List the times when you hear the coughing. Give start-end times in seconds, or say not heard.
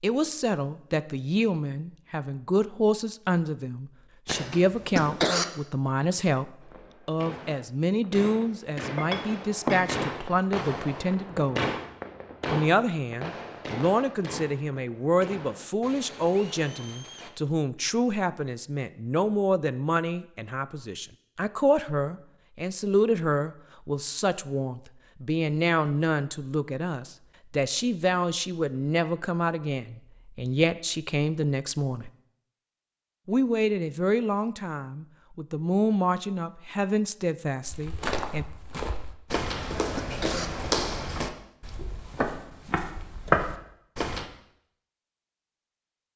4.2-5.5, 39.3-40.5.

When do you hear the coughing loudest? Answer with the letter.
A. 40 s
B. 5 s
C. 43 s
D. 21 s
B.